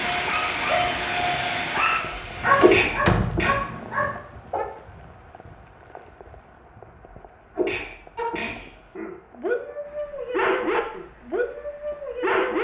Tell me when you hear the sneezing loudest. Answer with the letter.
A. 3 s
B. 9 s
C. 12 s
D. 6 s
A.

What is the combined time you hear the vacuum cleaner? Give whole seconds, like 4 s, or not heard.
3 s.